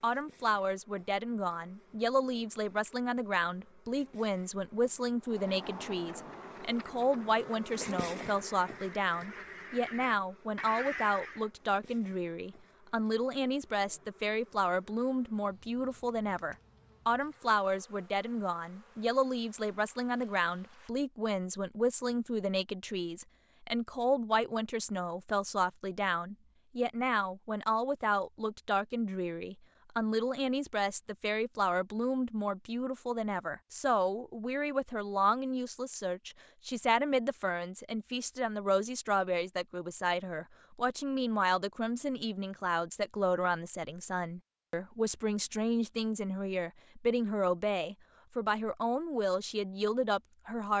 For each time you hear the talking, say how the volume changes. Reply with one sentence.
You can hear the talking from 0.0 to 50.7 s, at a steady volume.